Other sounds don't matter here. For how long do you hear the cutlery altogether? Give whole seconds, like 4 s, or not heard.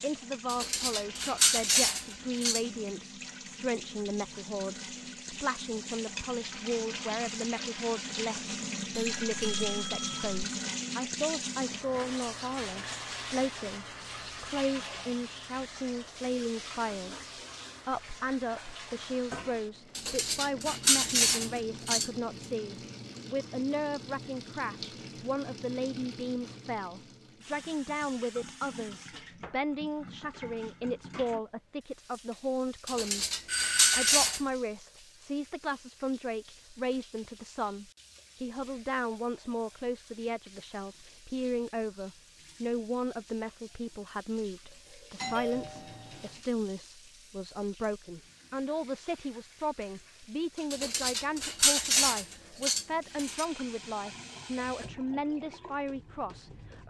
9 s.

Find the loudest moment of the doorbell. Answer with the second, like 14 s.
34 s.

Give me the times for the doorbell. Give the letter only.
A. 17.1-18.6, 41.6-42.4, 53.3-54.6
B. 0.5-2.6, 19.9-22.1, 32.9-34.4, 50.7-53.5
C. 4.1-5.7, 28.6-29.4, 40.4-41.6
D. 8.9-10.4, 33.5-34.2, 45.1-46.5
D.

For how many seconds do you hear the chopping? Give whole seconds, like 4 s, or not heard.
not heard.